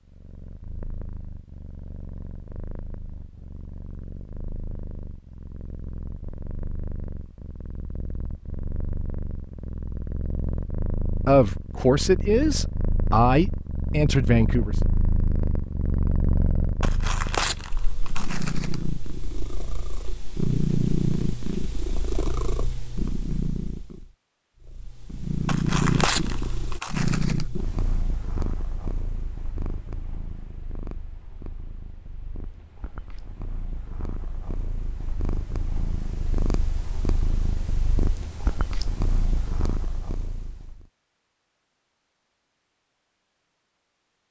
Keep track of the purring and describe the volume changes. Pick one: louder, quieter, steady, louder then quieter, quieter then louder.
louder then quieter.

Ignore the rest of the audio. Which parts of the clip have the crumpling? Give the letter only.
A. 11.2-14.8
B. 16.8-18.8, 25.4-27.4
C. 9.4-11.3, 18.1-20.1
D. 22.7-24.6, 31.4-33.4
B.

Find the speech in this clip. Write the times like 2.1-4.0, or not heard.
11.2-14.8.